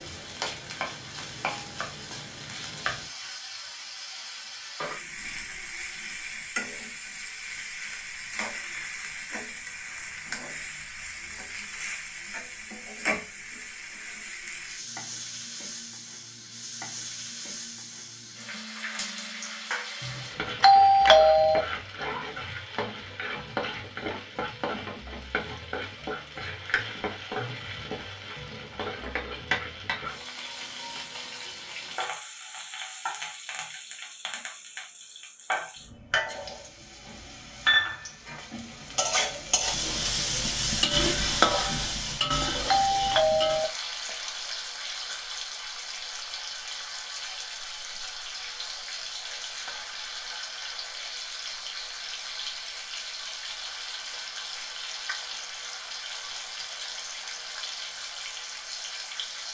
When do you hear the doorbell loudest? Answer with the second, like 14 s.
21 s.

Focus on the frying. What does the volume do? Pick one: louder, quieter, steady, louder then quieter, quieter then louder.
louder then quieter.